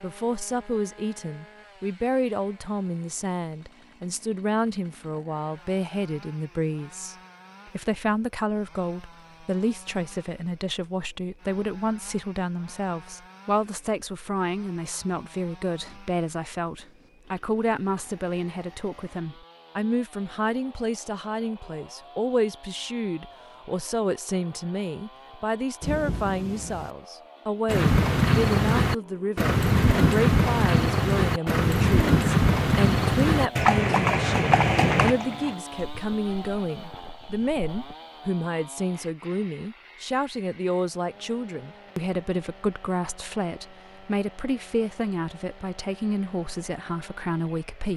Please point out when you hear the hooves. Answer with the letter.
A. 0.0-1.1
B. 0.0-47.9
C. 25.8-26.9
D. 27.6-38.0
D.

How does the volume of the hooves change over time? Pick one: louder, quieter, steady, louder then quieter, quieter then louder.
quieter.